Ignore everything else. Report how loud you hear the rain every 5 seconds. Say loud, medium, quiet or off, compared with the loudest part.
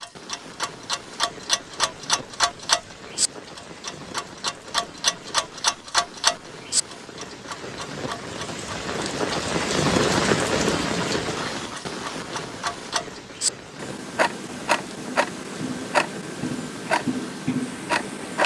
quiet, loud, loud, quiet.